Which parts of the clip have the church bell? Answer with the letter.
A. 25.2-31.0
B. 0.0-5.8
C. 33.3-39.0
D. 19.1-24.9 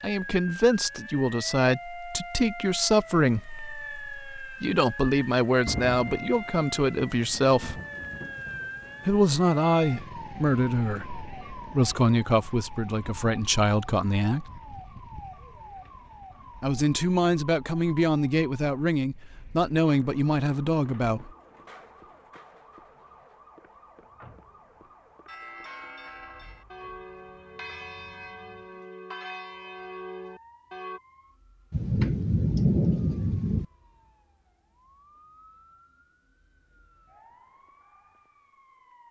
A.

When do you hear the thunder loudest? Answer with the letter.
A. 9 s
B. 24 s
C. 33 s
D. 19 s
C.